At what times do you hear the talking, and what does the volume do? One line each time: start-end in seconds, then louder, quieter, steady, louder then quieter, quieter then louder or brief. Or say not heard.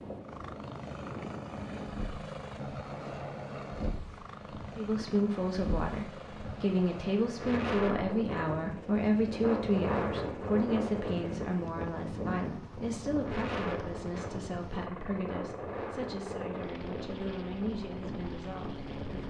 4.8-19.2 quieter.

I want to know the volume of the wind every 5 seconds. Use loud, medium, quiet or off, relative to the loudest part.
medium, loud, loud, medium.